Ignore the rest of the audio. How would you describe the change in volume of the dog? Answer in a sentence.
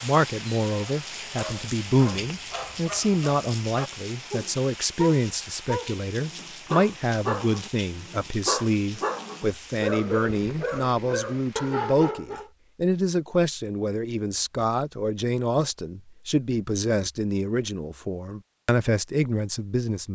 The loudness of the dog goes up.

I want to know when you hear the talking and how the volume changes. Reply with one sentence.
You can hear the talking from 0.0 to 20.1 s, at a steady volume.